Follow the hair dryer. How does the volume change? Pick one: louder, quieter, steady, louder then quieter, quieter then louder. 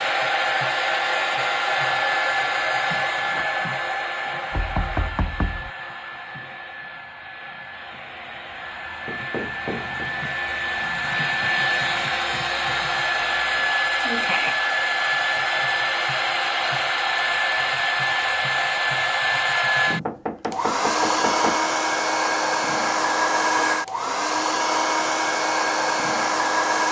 quieter then louder.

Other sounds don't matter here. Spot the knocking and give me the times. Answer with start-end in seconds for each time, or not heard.
4.5-5.7, 9.1-10.1, 19.9-21.6.